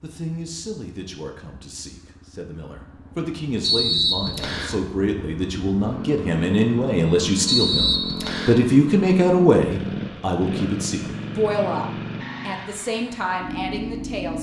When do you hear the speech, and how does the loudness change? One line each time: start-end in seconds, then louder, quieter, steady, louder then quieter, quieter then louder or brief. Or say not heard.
0.0-14.3 louder then quieter.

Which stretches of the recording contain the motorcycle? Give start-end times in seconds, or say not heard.
0.0-14.3.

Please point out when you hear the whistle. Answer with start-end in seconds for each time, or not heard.
3.6-4.8, 7.5-8.6.